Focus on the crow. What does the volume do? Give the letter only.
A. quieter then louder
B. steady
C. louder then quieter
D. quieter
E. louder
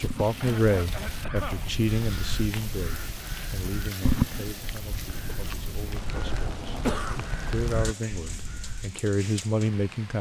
C.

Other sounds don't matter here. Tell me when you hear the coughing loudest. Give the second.
7 s.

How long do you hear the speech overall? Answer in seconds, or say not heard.
9 s.